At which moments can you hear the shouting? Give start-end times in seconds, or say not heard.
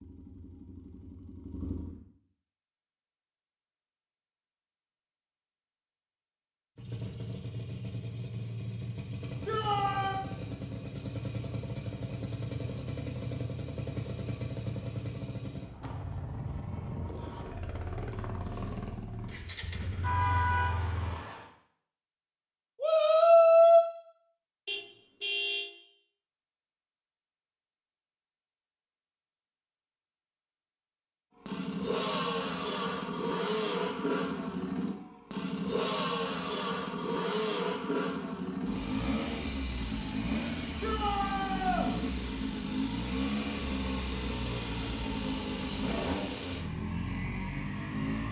9.4-10.2, 22.8-23.9, 40.8-41.9.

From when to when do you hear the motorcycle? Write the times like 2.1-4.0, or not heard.
0.0-2.0, 6.8-21.2, 31.4-48.2.